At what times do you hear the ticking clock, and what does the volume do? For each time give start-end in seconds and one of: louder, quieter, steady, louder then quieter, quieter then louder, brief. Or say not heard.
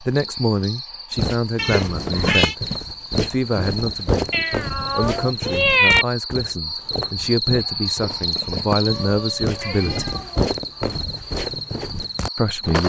not heard.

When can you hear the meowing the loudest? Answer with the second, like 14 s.
6 s.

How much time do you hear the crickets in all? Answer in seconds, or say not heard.
13 s.